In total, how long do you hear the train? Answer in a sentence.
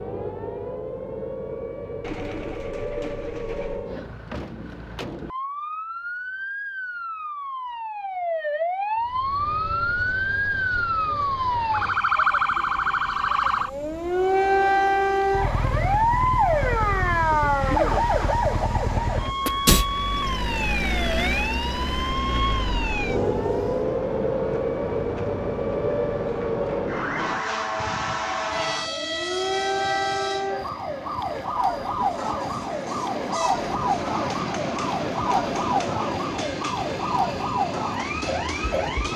The train can be heard for 30 seconds in total.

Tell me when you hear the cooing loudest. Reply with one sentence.
The loudest moment of the cooing is at 2 seconds.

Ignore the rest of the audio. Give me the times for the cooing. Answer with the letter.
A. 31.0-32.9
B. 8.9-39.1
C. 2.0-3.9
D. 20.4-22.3
C.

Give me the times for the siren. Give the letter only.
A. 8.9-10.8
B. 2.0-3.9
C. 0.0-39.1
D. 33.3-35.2
C.